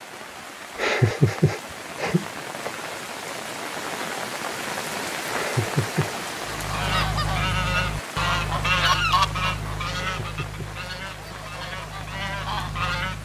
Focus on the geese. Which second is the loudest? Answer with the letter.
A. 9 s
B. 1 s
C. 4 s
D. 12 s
A.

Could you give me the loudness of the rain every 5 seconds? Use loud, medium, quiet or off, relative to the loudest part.
loud, loud, medium.